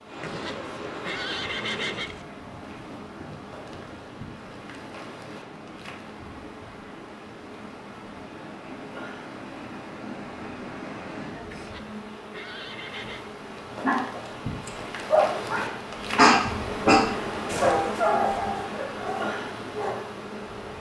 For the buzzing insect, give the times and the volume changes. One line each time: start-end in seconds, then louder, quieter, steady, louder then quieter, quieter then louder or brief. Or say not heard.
0.0-20.7 louder.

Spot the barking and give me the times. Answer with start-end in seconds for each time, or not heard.
13.8-20.0.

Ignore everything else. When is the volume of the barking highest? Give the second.
16 s.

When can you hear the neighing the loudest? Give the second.
2 s.